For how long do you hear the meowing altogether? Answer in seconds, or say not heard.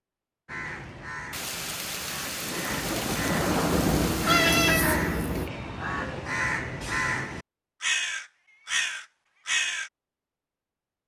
2 s.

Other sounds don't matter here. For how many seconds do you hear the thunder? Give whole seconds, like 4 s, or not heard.
3 s.